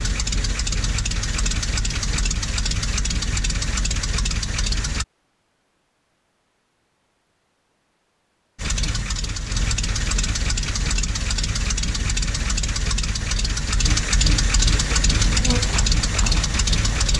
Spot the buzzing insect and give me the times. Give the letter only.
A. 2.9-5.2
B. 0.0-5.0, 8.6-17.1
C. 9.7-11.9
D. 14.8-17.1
D.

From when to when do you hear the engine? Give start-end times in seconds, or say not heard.
0.0-5.0, 8.6-17.1.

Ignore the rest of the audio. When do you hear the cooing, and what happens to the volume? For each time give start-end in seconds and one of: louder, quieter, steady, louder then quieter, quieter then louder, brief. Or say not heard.
not heard.